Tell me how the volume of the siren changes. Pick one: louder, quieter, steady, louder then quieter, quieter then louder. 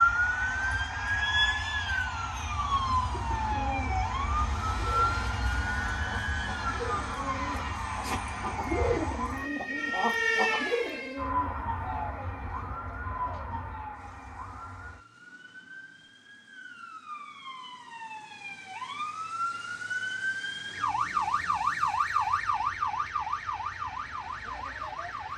quieter then louder.